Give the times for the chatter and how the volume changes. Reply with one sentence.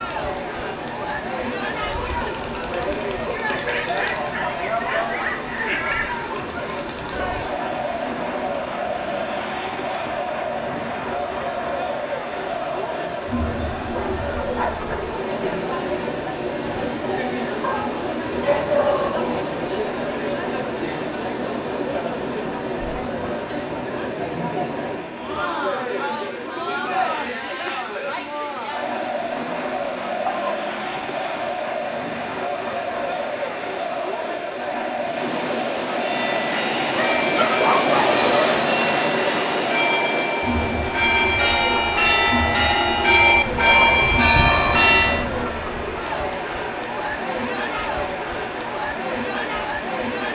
You can hear the chatter from 0.0 to 50.3 s, at a steady volume.